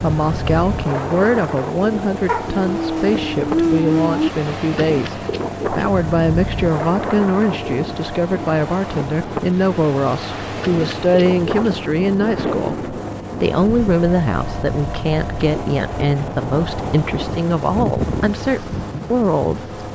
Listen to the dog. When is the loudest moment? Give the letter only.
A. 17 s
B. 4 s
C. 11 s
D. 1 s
B.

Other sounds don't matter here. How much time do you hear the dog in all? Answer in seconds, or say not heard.
2 s.